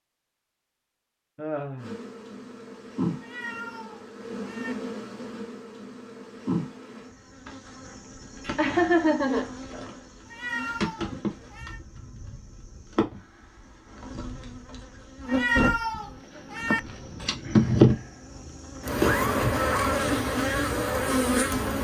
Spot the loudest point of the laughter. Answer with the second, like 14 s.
9 s.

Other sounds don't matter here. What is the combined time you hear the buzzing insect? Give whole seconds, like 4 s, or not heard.
20 s.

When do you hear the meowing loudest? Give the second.
16 s.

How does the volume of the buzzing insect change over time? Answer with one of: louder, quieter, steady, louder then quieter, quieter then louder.
louder.